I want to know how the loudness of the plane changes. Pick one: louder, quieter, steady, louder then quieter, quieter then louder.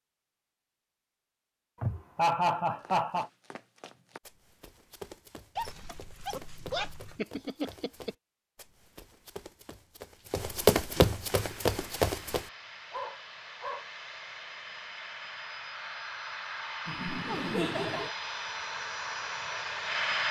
louder.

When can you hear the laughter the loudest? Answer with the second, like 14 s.
2 s.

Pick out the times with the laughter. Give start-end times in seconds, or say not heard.
1.8-3.3, 7.2-8.1, 16.9-18.1.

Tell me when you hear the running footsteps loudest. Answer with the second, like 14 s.
11 s.